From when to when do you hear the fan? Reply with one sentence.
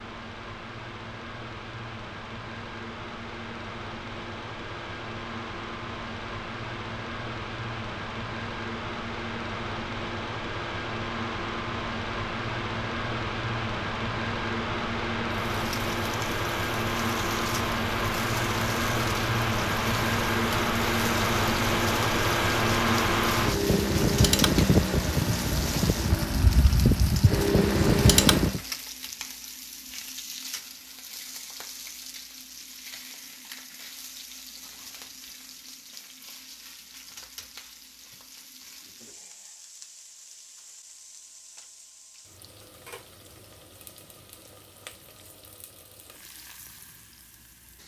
The fan can be heard from 0.0 to 28.6 s.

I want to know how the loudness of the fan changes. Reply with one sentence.
The volume of the fan goes up.